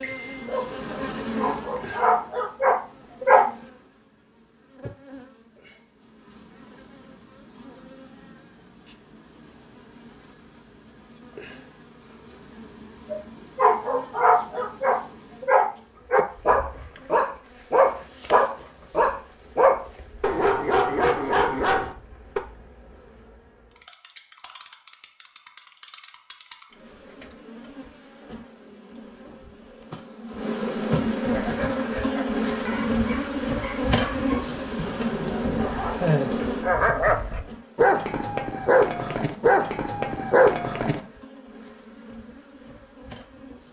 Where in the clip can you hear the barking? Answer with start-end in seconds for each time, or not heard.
0.0-3.5, 13.1-22.4, 31.3-41.0.